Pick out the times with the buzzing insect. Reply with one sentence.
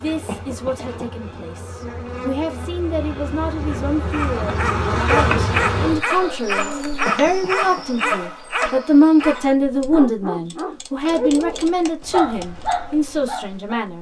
You can hear the buzzing insect from 0.0 to 13.9 s.